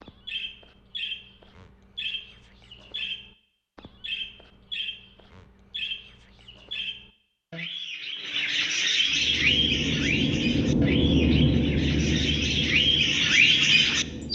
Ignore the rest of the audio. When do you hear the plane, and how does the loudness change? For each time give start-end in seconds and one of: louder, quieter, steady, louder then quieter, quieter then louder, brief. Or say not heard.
8.9-14.3 louder then quieter.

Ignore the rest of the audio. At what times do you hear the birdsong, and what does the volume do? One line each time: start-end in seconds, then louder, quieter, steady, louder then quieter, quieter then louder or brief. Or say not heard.
0.0-14.3 louder.